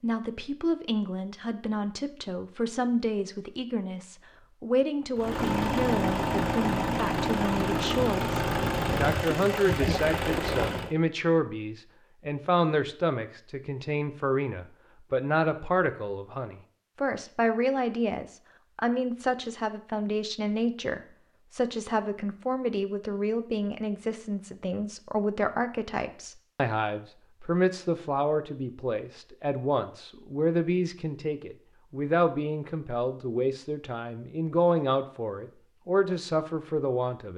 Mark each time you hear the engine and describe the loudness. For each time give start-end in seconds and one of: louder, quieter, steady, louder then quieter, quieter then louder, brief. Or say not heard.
5.2-10.9 steady.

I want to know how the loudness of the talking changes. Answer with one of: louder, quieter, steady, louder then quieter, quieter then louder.
steady.